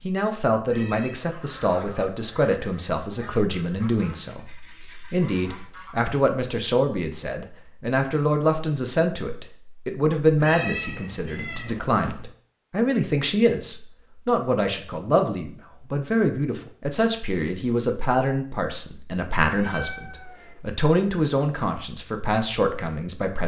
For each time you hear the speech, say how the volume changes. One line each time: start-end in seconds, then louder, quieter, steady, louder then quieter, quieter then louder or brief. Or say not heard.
0.0-23.4 steady.